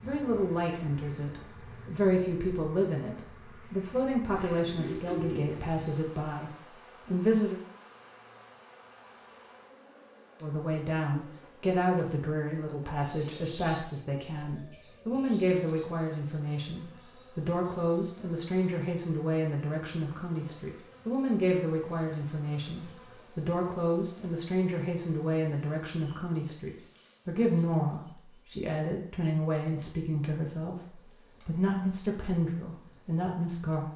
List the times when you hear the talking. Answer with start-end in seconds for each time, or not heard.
0.0-7.5, 10.4-33.9.